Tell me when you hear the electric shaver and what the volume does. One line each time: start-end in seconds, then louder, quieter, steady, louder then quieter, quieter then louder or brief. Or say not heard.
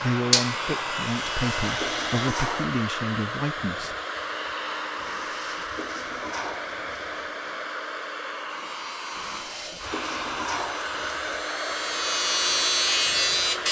0.1-2.5 brief
8.4-13.6 louder.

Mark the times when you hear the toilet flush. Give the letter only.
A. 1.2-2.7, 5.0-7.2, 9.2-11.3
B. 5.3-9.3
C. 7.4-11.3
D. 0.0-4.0
A.